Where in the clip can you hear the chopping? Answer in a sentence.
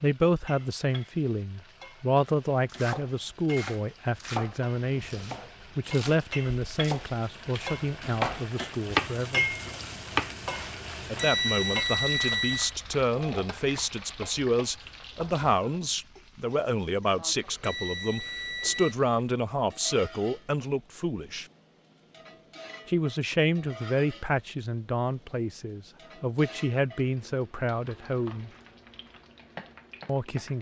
You can hear the chopping from 2.6 to 11.2 s.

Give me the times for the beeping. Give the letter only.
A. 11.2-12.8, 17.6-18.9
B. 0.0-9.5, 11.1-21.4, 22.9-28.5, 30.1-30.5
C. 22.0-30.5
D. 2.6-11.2
A.